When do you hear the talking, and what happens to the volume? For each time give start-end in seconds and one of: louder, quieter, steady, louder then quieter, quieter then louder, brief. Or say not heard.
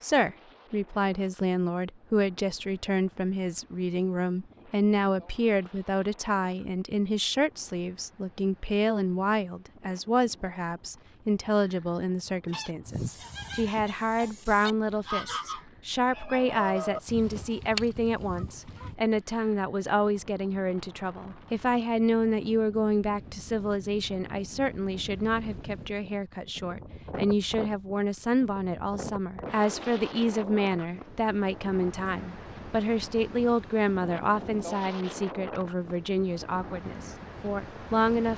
0.0-38.3 steady.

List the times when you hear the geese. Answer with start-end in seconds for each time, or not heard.
12.4-18.9.